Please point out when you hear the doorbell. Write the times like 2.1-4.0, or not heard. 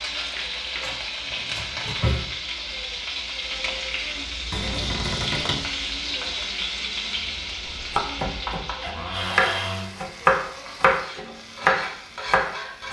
not heard.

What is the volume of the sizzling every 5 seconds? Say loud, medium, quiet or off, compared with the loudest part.
loud, loud, medium.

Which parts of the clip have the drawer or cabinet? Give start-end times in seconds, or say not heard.
0.8-2.3, 4.5-5.7, 8.8-9.9.